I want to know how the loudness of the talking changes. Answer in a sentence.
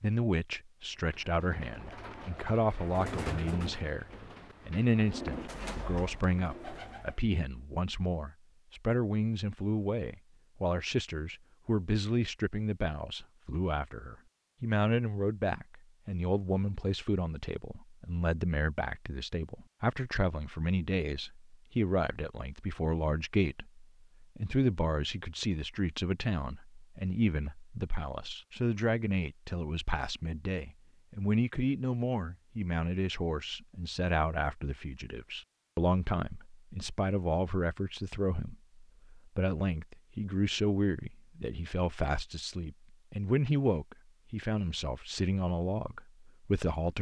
The loudness of the talking stays about the same.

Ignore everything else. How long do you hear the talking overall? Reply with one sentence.
The talking can be heard for 47 seconds in total.